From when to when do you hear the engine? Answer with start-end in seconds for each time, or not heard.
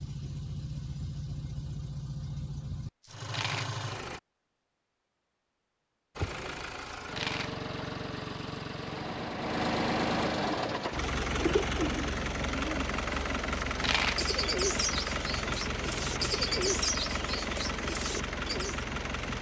0.0-4.2, 6.2-19.3.